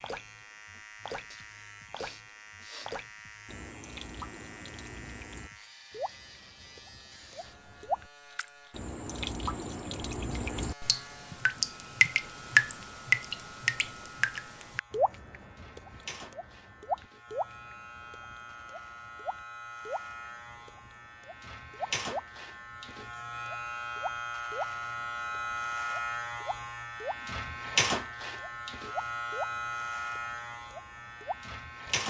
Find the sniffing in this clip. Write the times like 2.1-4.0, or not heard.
1.3-2.9.